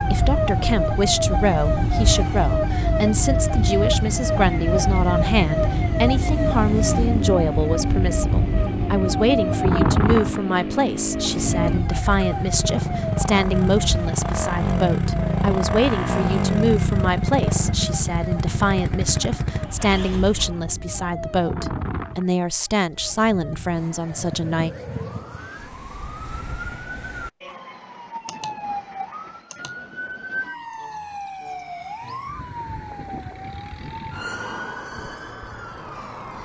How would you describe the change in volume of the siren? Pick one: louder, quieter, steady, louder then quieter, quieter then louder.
quieter.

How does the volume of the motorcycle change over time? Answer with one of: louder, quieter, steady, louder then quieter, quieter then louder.
louder.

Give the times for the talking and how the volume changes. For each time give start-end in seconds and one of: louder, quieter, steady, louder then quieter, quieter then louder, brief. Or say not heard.
0.1-24.7 steady.